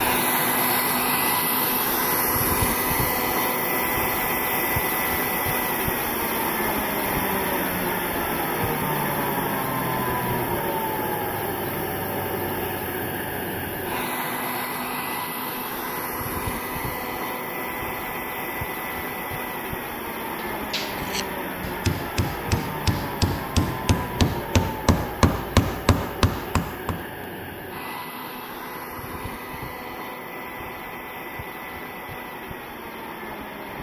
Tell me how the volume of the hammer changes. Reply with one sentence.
The volume of the hammer goes up.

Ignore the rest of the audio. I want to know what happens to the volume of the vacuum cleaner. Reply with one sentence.
The volume of the vacuum cleaner goes down.